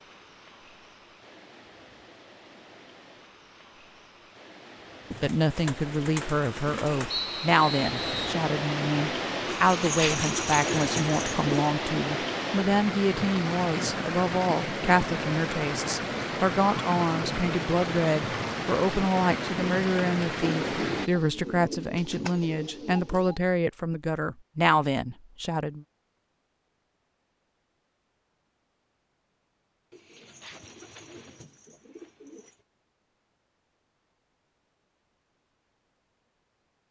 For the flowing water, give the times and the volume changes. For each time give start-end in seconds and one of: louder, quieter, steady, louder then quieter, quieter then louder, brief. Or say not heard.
0.0-21.1 louder.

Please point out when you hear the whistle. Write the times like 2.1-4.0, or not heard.
7.1-8.4.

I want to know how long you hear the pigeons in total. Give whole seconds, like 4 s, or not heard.
10 s.